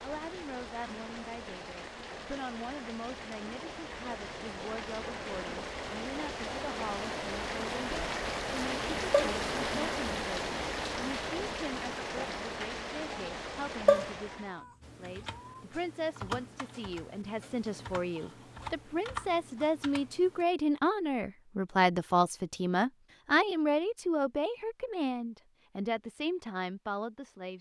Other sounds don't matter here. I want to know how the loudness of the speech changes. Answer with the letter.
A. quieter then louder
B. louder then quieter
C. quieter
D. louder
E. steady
D.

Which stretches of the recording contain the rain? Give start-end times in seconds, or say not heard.
0.0-14.7.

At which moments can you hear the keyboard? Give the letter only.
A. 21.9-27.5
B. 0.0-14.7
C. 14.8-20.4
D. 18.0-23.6
C.